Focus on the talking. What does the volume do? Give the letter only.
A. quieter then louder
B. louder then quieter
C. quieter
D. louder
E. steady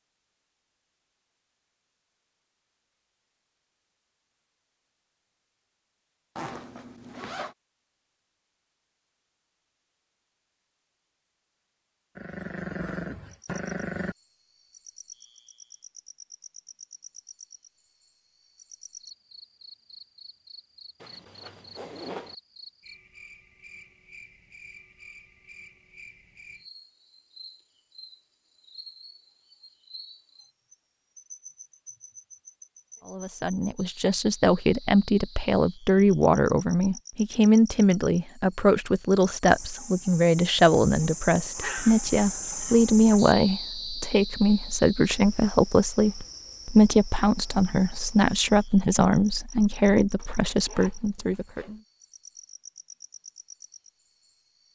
E.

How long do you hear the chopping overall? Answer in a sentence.
The chopping can't be heard in this clip.